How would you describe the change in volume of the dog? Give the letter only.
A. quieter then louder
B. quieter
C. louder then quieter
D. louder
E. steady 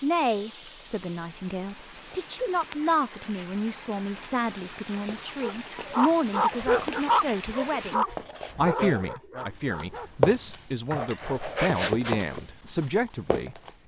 B.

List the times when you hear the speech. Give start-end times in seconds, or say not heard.
0.0-13.6.